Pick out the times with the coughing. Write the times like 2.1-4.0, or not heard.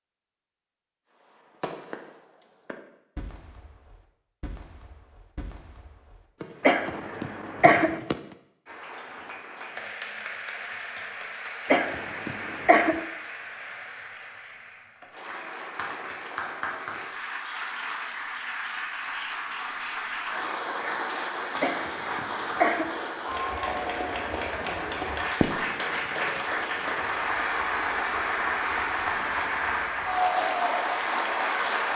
6.6-8.0, 11.7-13.0, 21.6-22.9.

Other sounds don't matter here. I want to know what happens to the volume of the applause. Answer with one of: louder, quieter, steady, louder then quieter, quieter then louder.
louder.